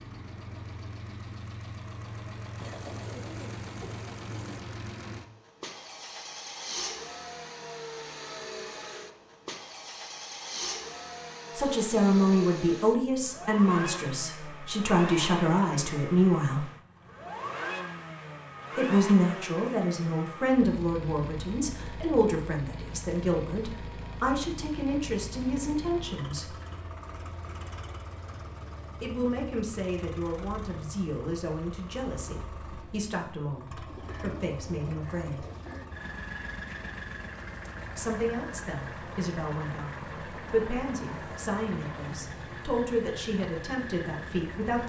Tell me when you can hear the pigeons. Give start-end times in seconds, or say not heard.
2.5-4.6, 33.9-35.9.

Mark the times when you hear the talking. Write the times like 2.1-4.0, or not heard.
11.6-16.6, 18.8-26.6, 29.0-35.5, 38.0-44.8.